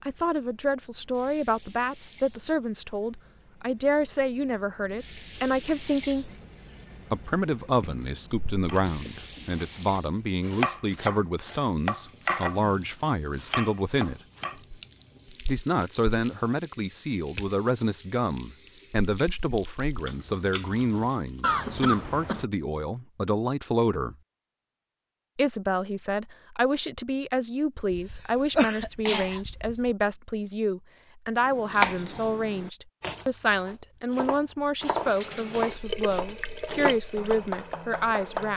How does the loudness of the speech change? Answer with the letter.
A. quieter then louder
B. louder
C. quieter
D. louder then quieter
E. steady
E.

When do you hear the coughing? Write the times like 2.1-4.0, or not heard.
7.8-9.0, 21.4-22.4, 27.9-29.9.